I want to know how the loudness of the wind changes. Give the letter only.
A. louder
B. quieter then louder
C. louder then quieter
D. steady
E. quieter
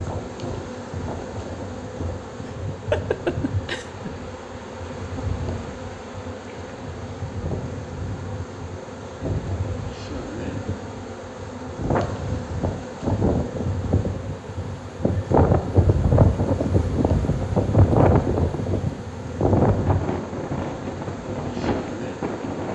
A.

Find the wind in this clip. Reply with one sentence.
The wind can be heard from 0.0 to 22.6 s.